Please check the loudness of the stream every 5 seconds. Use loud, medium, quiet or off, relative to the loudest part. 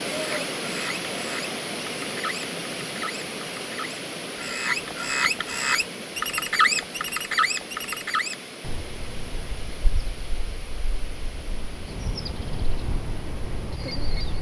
loud, medium, quiet.